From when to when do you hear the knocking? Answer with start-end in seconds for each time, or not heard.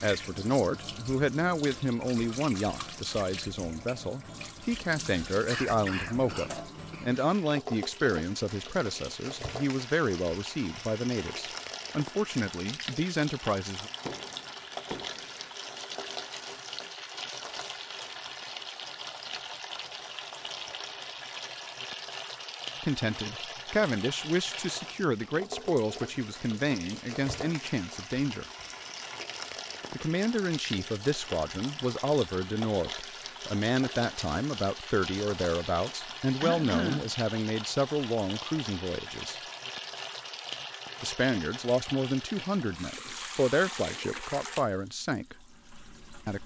14.1-15.5.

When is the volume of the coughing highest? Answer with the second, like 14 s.
37 s.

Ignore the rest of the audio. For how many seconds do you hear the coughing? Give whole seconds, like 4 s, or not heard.
3 s.